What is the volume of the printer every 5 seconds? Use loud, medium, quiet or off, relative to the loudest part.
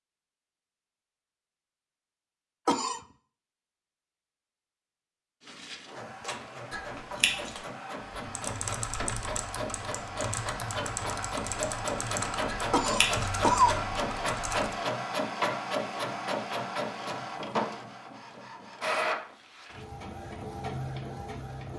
off, medium, loud, loud, medium.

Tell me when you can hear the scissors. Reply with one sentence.
The scissors can be heard from 6.7 to 7.5 s and from 12.4 to 13.3 s.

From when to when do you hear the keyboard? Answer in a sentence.
The keyboard can be heard from 8.2 to 14.8 s.